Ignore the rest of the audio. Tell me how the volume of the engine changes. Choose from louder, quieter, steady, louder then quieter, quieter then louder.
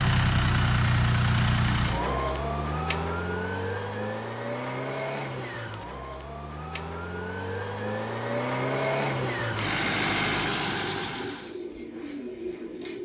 quieter then louder.